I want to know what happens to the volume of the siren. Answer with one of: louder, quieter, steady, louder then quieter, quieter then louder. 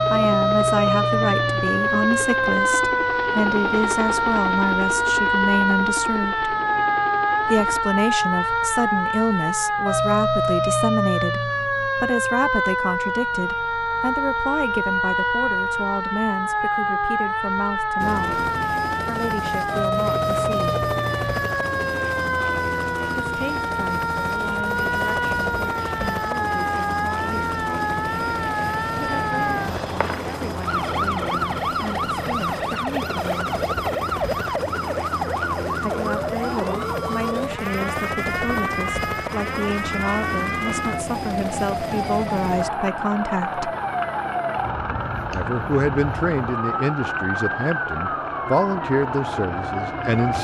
quieter.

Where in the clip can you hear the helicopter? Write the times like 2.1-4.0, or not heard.
0.0-7.8, 17.9-50.3.